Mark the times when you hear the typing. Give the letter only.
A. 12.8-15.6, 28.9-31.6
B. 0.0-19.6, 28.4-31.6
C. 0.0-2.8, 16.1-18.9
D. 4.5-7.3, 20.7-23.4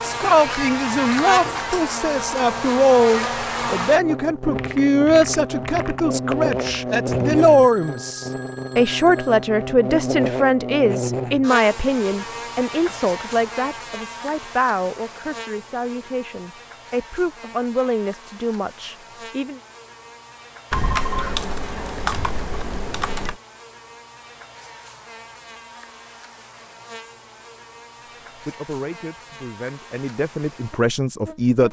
D.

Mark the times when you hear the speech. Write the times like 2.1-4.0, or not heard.
0.0-19.6, 28.4-31.6.